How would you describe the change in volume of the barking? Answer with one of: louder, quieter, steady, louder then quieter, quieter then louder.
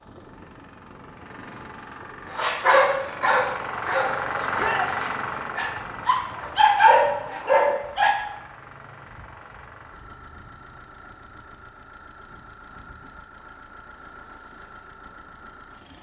quieter then louder.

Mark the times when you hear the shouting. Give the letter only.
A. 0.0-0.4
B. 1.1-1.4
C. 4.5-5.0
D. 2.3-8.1
C.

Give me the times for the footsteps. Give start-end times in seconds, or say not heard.
not heard.